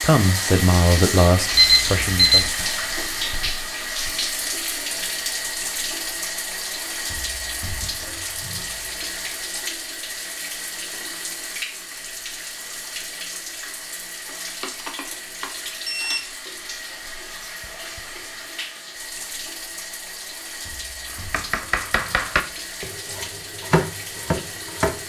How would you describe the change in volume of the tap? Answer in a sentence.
The volume of the tap goes down.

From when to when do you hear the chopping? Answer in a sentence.
The chopping can be heard from 21.1 to 25.0 s.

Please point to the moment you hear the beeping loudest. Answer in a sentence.
The loudest moment of the beeping is at 2 seconds.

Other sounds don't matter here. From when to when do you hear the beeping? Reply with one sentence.
The beeping can be heard from 1.6 to 2.5 s and from 14.6 to 16.2 s.